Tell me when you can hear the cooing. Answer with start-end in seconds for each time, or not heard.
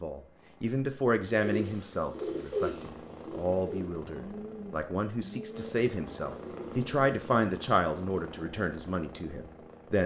1.4-6.8.